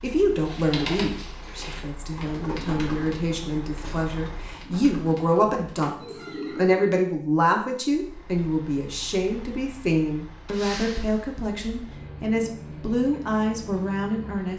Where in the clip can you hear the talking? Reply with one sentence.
You can hear the talking from 0.0 to 14.5 s.